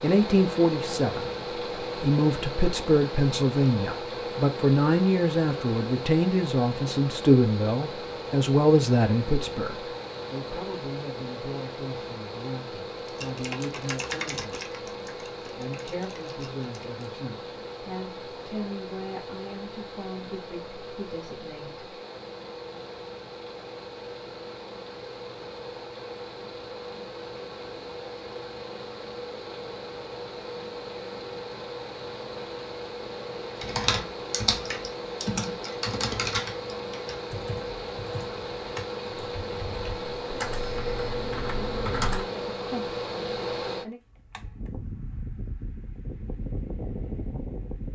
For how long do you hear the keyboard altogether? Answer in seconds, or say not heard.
13 s.